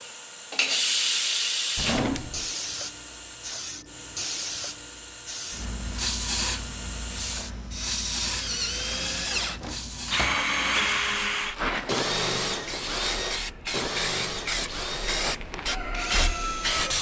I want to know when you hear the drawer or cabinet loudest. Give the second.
2 s.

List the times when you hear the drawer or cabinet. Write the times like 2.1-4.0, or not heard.
1.8-2.5, 8.8-10.4.